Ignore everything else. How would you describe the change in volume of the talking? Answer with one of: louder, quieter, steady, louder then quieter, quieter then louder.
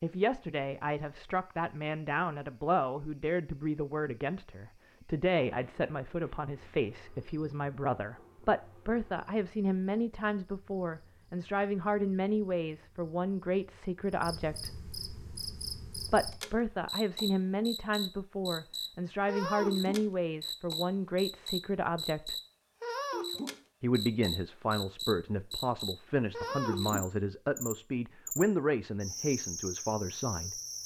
steady.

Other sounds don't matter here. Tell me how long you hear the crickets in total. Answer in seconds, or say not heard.
31 s.